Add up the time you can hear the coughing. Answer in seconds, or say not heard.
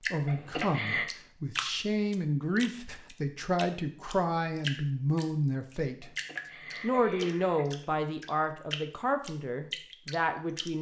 3 s.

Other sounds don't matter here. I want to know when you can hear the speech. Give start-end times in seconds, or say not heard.
0.1-6.1, 6.8-10.7.